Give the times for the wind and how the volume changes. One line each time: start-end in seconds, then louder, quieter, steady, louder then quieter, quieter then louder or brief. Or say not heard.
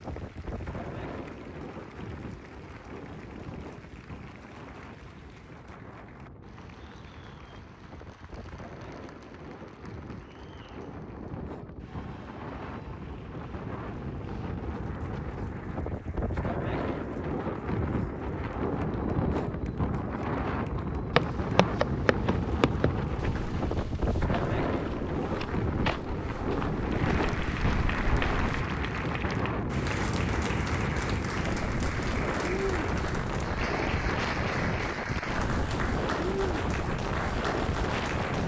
0.0-38.4 louder.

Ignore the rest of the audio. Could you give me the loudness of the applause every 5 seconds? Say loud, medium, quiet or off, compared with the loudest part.
quiet, quiet, quiet, quiet, quiet, loud, loud, loud.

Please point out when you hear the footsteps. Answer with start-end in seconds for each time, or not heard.
21.1-28.6.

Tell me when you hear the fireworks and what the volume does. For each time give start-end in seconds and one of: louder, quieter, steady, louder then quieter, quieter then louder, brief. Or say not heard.
not heard.